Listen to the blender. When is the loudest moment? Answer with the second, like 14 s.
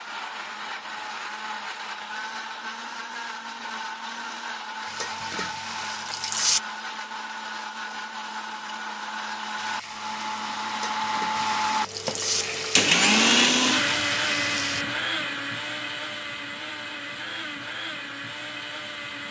13 s.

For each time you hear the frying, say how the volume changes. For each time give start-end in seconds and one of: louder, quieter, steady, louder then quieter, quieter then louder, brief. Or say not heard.
4.8-6.6 brief
9.6-14.8 louder.